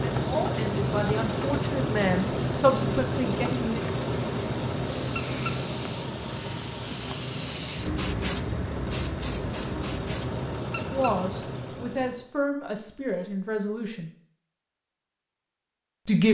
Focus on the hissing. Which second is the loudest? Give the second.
8 s.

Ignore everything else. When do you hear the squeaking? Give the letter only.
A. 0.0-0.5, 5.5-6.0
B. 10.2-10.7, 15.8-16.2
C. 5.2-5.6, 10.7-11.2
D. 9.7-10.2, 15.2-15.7
C.